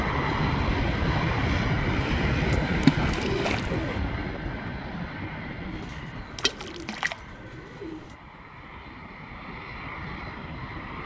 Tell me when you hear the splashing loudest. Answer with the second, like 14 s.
3 s.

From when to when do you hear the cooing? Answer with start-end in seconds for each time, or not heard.
2.0-4.0, 5.7-8.2.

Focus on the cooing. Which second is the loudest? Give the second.
3 s.